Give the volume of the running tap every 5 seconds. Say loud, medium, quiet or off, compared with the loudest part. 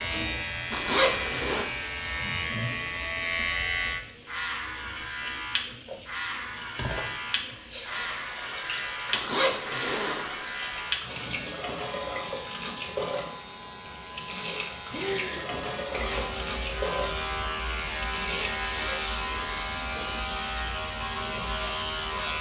loud, loud, loud, loud, medium.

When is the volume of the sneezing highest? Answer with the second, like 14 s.
15 s.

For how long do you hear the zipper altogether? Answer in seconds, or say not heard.
4 s.